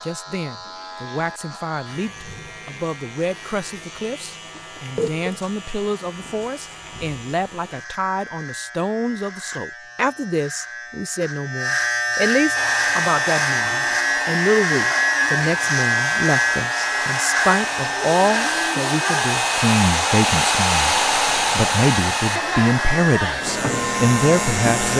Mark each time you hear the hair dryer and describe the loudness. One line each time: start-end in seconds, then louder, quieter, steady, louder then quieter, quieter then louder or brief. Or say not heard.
12.5-24.9 louder then quieter.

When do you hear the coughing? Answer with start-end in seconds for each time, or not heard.
4.5-5.4.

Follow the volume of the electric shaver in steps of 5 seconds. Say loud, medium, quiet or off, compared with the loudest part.
quiet, quiet, loud, loud, loud.